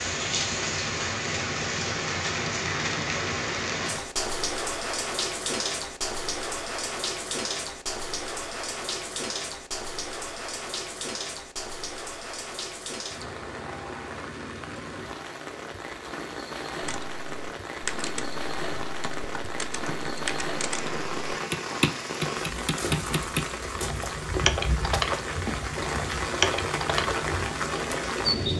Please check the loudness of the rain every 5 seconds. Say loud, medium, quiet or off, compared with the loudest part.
loud, loud, medium, medium, loud, loud.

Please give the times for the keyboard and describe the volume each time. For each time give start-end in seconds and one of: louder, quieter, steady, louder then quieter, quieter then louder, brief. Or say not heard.
16.8-27.6 louder.